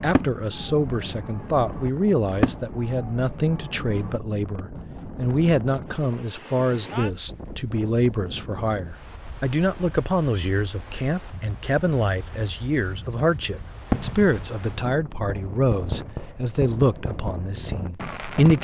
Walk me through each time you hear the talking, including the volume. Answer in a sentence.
The talking can be heard from 0.0 to 18.5 s, at a steady volume.